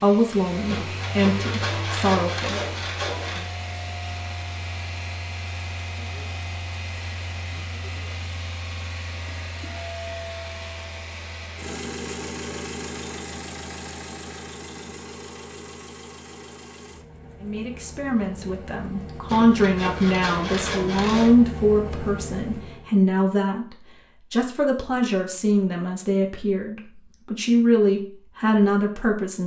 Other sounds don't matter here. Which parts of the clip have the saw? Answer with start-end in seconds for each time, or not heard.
0.7-3.5, 19.2-21.4.